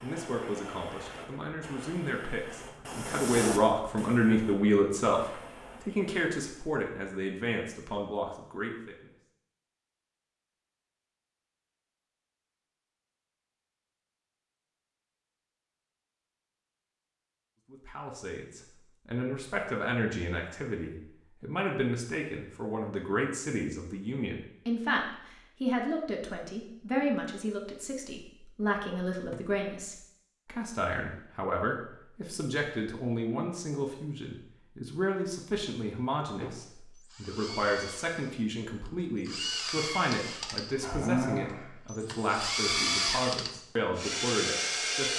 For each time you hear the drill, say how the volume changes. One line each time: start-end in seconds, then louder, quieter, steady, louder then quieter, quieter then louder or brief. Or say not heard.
36.4-45.1 louder.